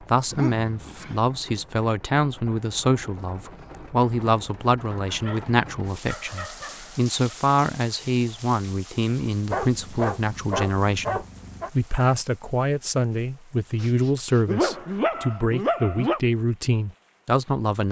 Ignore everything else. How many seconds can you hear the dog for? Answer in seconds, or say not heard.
8 s.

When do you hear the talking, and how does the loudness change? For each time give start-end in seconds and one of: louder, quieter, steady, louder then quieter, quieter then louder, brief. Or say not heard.
0.1-17.8 steady.